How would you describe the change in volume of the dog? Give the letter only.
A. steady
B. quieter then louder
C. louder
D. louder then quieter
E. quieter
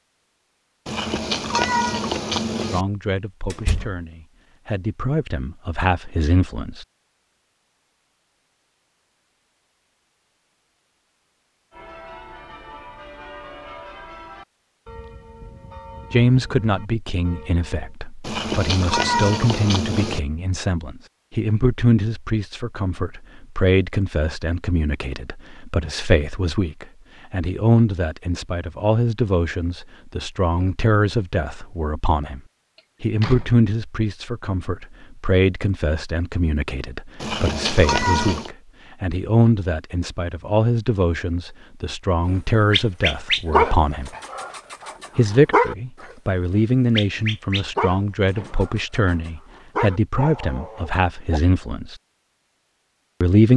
E.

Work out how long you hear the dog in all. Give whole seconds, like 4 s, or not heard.
8 s.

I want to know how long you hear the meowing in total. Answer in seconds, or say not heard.
5 s.